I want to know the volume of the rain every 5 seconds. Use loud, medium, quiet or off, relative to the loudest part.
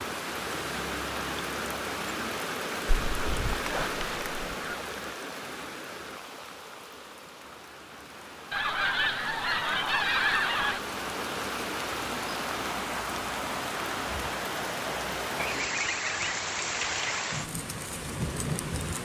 loud, medium, loud, loud.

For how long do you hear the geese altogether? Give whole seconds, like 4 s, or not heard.
6 s.